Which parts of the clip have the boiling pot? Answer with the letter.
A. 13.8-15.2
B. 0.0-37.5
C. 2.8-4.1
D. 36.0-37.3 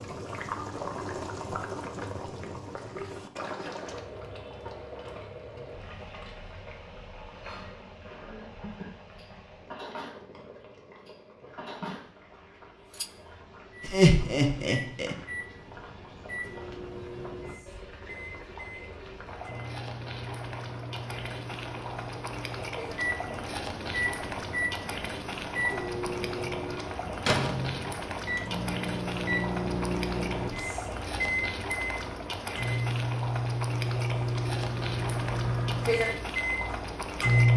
B.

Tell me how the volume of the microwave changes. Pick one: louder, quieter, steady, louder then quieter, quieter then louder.
louder.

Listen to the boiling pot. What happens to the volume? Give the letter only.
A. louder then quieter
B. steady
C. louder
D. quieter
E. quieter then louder
E.